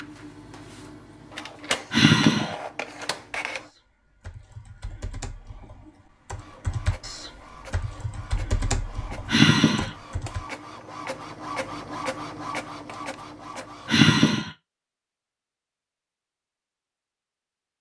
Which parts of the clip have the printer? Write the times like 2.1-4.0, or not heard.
0.0-3.7, 6.3-14.1.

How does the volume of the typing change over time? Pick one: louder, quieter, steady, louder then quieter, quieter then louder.
louder then quieter.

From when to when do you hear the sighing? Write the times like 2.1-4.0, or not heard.
1.9-2.5, 9.2-9.9, 13.8-14.5.